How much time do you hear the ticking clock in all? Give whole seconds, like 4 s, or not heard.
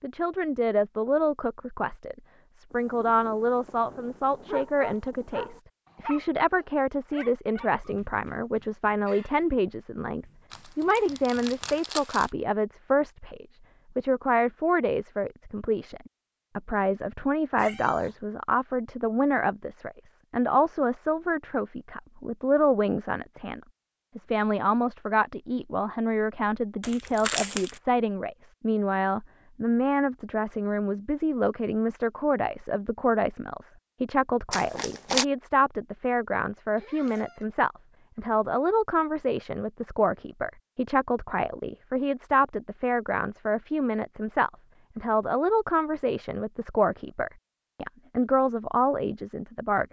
not heard.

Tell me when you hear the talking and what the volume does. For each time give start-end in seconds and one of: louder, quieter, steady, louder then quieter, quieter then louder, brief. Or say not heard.
0.0-49.8 steady.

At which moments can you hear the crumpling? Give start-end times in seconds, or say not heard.
10.5-12.3, 26.8-27.8, 34.5-35.2.